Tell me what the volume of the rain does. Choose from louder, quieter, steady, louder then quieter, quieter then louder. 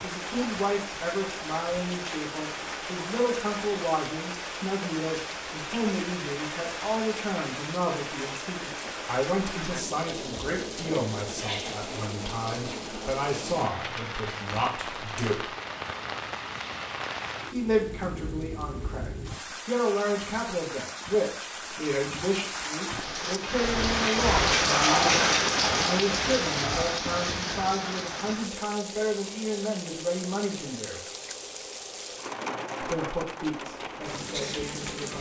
louder then quieter.